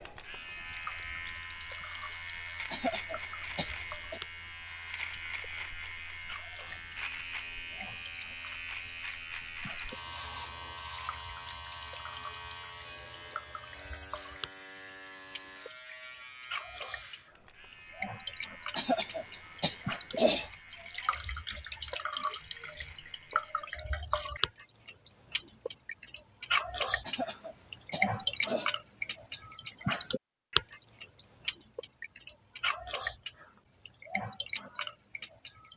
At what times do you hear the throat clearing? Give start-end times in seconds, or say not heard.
2.7-4.2, 18.8-20.5, 27.1-28.8.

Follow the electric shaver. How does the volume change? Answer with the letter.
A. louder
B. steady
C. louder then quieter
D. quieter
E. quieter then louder
D.